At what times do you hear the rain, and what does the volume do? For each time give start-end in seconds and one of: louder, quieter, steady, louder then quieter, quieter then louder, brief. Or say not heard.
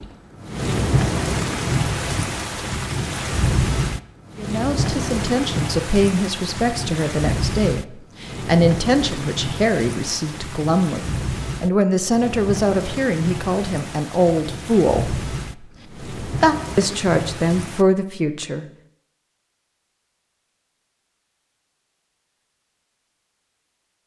0.0-17.9 quieter.